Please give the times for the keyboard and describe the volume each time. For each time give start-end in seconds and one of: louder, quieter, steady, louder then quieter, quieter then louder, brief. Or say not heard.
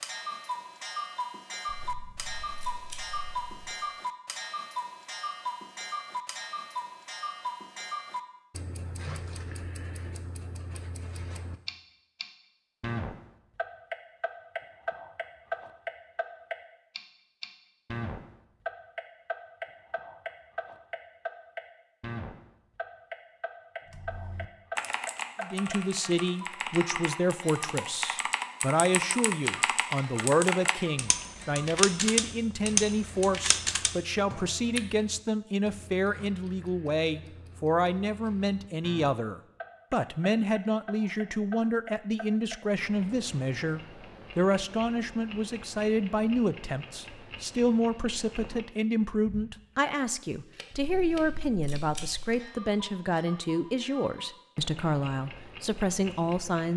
23.9-34.8 louder.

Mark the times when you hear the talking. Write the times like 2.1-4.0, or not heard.
25.4-56.7.